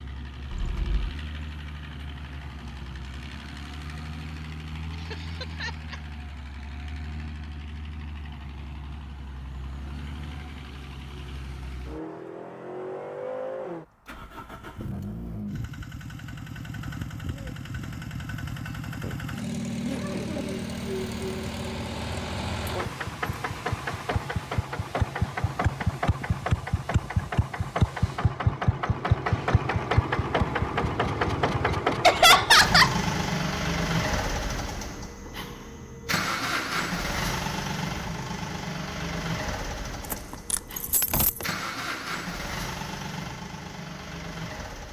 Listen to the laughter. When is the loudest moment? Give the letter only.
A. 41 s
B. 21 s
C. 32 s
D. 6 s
C.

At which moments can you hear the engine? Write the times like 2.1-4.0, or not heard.
0.0-44.8.